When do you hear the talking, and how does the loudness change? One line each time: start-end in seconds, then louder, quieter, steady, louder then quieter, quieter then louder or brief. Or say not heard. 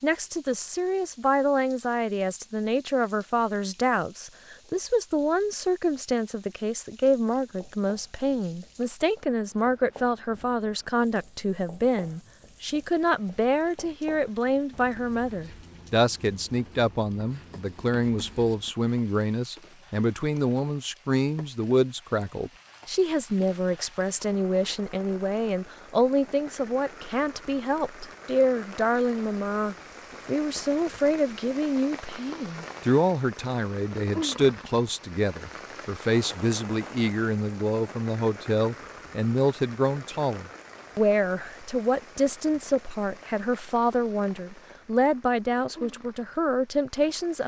0.0-47.4 steady.